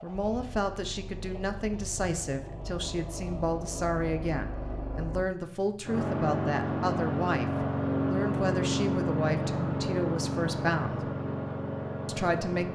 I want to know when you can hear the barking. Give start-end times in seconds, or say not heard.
not heard.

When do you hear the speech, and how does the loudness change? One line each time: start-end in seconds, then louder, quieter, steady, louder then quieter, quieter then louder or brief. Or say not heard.
0.0-11.1 steady
12.1-12.7 brief.